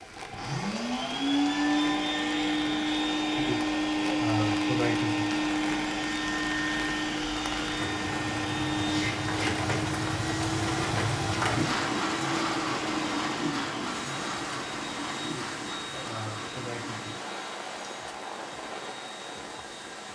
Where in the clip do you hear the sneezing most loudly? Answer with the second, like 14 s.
5 s.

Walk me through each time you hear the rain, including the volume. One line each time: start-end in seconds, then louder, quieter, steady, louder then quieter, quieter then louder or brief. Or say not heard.
0.0-20.0 louder then quieter.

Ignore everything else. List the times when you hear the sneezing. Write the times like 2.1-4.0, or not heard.
3.4-5.3, 15.2-17.1.